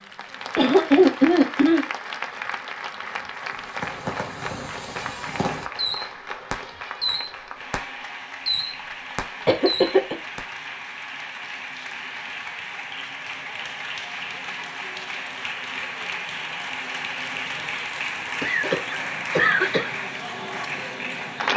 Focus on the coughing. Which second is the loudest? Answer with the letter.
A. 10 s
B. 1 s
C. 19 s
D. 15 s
B.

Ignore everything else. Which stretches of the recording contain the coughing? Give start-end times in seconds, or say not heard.
0.6-1.9, 9.4-10.2, 18.4-19.9.